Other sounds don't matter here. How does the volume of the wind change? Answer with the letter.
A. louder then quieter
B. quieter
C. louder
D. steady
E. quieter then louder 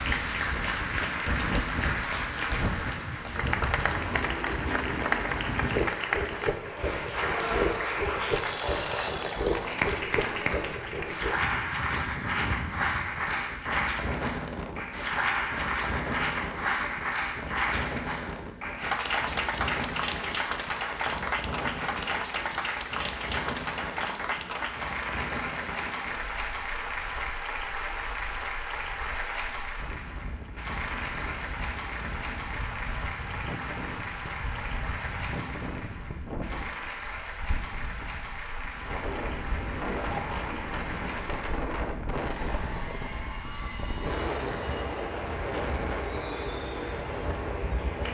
E.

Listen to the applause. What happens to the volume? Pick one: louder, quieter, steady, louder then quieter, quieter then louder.
quieter.